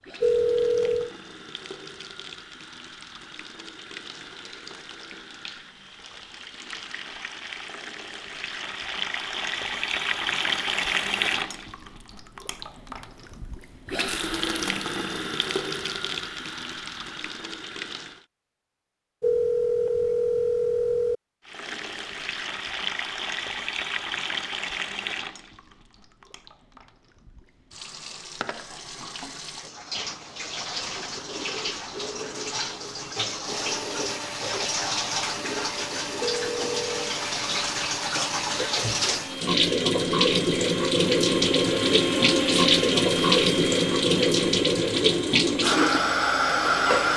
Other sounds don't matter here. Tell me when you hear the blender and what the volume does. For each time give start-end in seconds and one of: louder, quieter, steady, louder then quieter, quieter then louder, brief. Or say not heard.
33.5-47.0 louder then quieter.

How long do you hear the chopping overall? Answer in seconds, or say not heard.
not heard.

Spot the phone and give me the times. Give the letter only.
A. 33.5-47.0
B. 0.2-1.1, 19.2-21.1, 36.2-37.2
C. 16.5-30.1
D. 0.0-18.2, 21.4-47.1
B.